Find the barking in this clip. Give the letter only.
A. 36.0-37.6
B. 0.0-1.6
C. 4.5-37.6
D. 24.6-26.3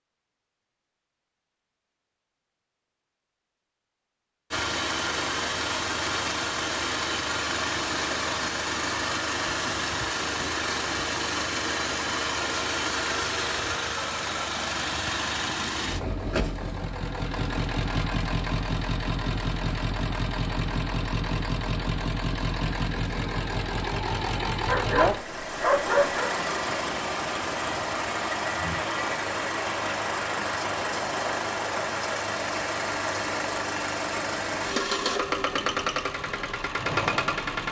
D.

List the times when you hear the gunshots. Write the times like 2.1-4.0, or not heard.
not heard.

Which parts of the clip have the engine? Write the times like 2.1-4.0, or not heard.
4.5-37.6.